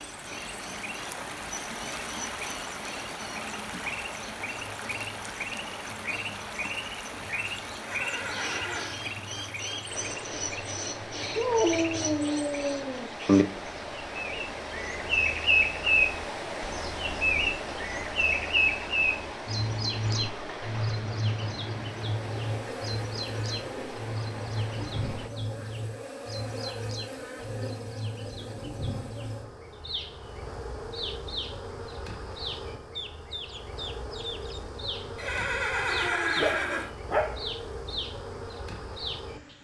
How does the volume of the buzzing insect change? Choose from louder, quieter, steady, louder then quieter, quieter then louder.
steady.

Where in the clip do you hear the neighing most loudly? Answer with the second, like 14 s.
36 s.